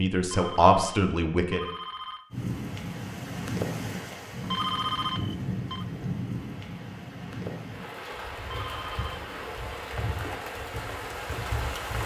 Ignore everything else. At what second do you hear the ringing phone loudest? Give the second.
5 s.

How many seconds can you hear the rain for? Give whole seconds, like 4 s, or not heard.
10 s.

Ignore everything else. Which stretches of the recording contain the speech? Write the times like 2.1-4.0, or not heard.
0.0-1.6.